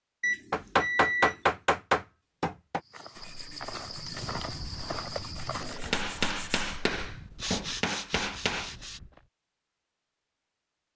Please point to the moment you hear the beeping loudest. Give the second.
1 s.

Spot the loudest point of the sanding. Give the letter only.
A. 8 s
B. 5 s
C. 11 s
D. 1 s
A.